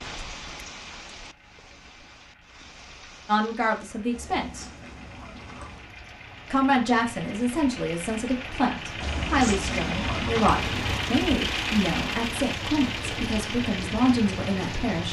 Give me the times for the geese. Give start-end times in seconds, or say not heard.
4.1-5.9, 9.0-11.0.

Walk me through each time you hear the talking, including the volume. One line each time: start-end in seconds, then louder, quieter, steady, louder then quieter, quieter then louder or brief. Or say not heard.
3.2-4.7 brief
6.5-15.0 steady.